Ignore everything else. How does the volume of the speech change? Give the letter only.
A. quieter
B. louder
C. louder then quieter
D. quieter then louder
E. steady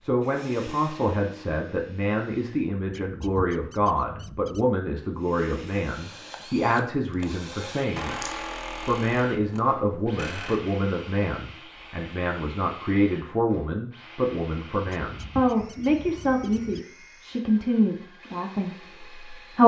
E.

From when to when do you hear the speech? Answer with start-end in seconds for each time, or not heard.
0.0-19.6.